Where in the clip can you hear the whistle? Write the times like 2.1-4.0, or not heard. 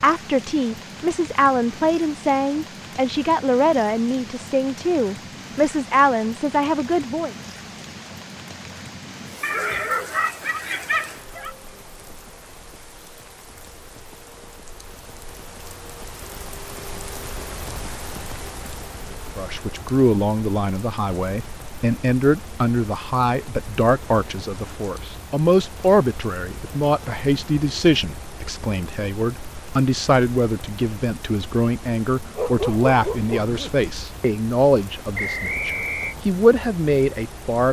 35.1-36.1.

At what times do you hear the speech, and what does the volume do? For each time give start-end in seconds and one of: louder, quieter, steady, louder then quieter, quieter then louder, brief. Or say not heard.
0.0-7.3 steady
19.4-37.6 steady.